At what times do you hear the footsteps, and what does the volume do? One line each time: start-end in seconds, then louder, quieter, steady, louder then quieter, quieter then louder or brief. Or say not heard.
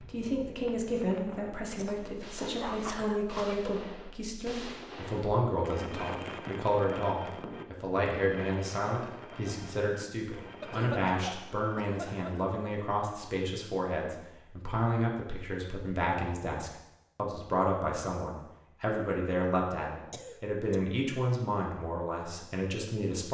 not heard.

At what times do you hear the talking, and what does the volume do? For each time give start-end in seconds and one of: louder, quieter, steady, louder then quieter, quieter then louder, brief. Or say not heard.
0.0-23.2 steady.